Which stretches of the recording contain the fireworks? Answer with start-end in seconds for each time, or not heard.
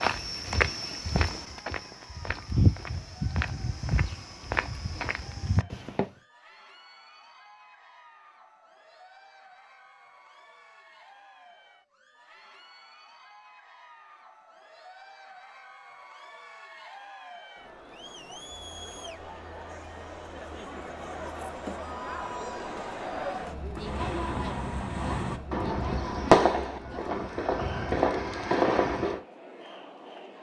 23.8-29.2.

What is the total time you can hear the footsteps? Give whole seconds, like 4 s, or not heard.
6 s.